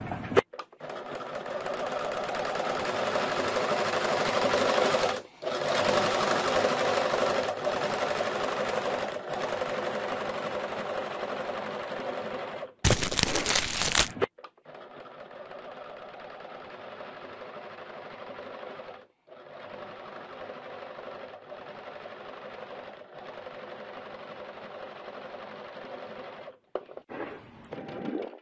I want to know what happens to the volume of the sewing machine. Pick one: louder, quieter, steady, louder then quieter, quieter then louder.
quieter.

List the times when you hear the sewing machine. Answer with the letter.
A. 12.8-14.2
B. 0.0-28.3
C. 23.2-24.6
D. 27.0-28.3
B.